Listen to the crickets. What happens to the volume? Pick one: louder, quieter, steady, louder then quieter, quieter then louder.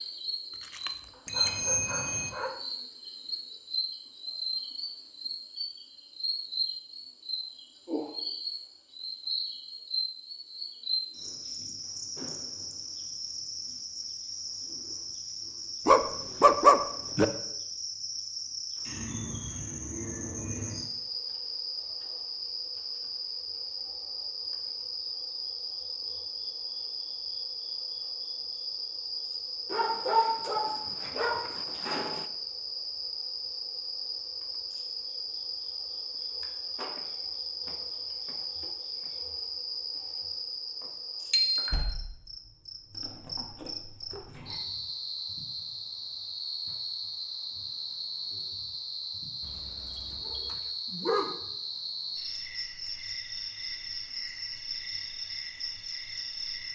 steady.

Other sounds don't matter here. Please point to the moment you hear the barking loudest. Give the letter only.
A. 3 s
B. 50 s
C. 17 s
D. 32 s
C.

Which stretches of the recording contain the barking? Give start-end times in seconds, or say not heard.
0.6-2.6, 15.8-17.2, 29.7-32.2, 49.4-51.4.